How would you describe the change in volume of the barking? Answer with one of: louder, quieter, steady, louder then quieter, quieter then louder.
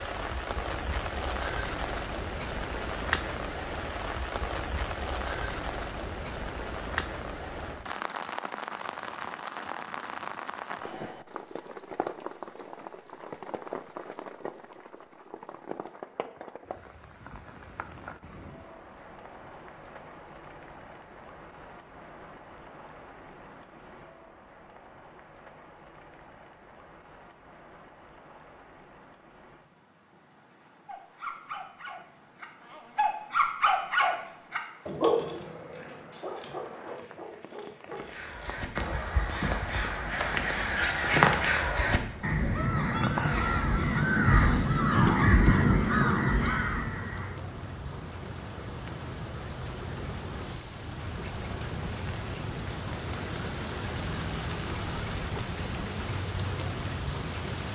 louder then quieter.